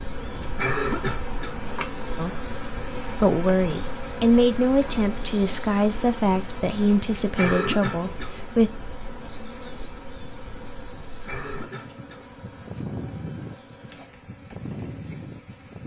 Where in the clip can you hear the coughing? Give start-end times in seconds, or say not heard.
0.6-1.6, 7.3-8.3, 11.2-12.2.